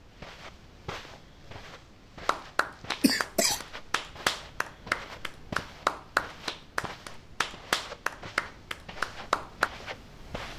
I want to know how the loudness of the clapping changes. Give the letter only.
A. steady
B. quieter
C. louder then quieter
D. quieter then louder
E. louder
E.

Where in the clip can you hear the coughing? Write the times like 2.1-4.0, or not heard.
3.0-3.6.